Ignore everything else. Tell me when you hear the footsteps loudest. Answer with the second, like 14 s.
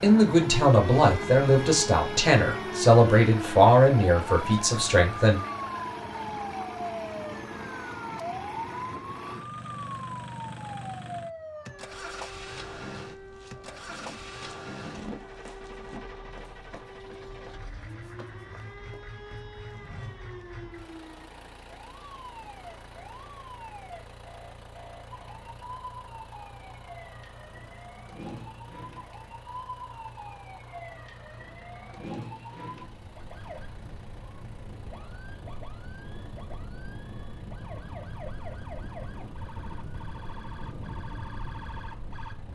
15 s.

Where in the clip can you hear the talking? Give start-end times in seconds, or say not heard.
0.0-5.4.